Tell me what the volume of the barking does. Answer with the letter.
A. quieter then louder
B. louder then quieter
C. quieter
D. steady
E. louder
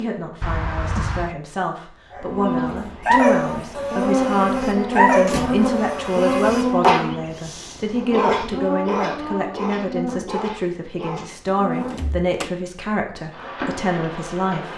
C.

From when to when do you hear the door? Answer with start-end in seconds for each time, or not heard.
0.4-1.4, 5.2-5.7, 11.4-12.5.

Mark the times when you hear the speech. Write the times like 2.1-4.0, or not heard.
0.0-14.7.